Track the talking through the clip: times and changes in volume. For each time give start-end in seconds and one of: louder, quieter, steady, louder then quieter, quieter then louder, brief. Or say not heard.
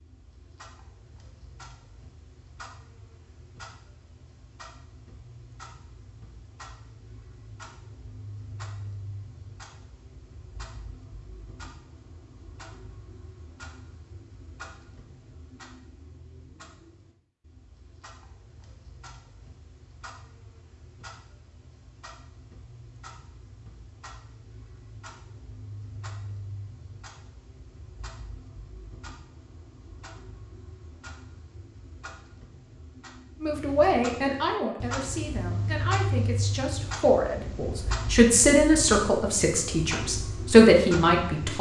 33.4-41.5 quieter then louder.